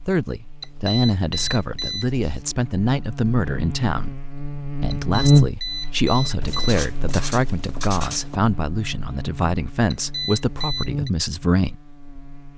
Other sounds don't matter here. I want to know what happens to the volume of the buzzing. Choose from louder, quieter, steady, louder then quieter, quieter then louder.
louder then quieter.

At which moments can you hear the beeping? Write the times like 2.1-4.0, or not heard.
0.6-2.1, 4.9-6.8, 9.9-11.1.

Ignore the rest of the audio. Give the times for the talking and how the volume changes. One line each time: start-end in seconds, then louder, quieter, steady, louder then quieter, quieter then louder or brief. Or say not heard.
0.1-11.8 steady.